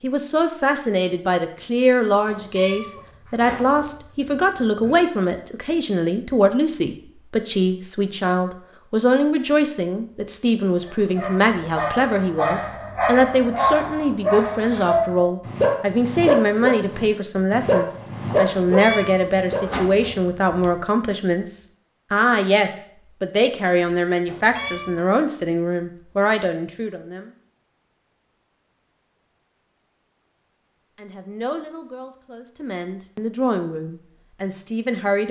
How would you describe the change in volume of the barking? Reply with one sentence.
The volume of the barking goes up.